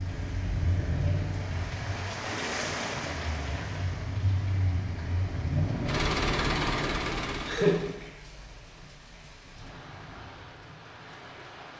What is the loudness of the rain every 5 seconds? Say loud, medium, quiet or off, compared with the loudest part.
loud, medium, medium.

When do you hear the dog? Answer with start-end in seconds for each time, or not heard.
not heard.